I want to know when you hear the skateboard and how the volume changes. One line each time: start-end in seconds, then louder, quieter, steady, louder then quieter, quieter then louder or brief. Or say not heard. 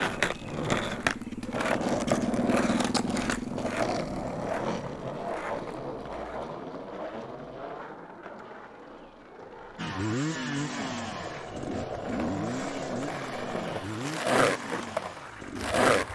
0.0-16.0 quieter then louder.